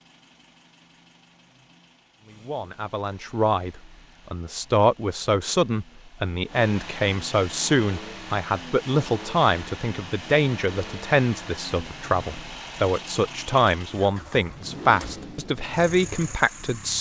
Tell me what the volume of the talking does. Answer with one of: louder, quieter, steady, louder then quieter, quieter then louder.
steady.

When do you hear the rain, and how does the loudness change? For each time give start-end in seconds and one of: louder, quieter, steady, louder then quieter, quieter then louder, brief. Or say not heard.
not heard.